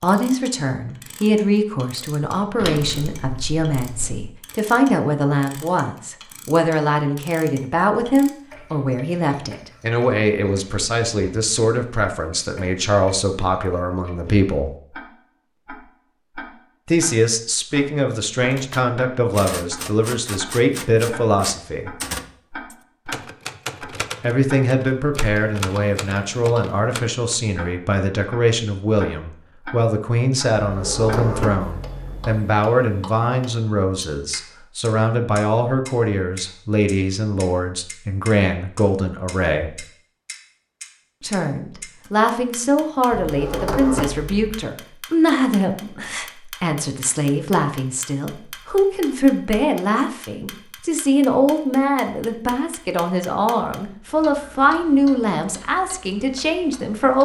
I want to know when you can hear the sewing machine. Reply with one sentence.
You can't hear the sewing machine here.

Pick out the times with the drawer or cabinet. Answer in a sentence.
The drawer or cabinet can be heard from 2.5 to 4.3 s, from 30.6 to 32.4 s and from 43.1 to 44.6 s.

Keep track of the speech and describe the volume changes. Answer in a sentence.
The volume of the speech stays about the same.